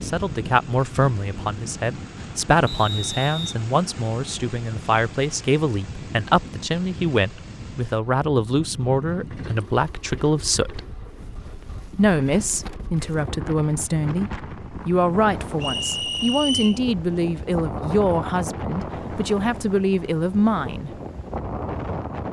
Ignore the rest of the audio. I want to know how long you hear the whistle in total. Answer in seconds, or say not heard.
2 s.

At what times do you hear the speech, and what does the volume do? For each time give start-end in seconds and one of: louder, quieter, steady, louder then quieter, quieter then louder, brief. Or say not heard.
0.0-10.8 steady
11.9-20.9 steady.